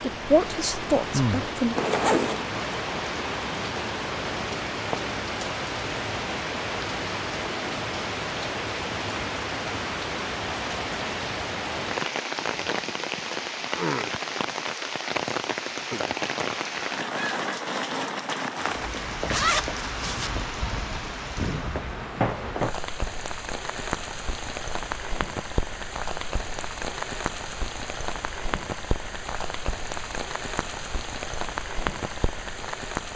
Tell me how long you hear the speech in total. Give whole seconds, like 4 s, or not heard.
2 s.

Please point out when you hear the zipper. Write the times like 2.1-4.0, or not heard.
1.8-2.5, 18.6-20.3.